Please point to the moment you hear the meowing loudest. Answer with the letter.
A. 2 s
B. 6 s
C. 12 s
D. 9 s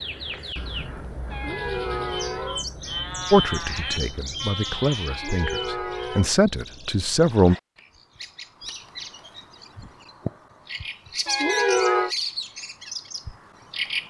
C.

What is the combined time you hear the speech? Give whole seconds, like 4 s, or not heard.
4 s.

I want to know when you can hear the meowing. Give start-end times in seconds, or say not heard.
1.3-2.6, 5.0-6.3, 11.2-12.2.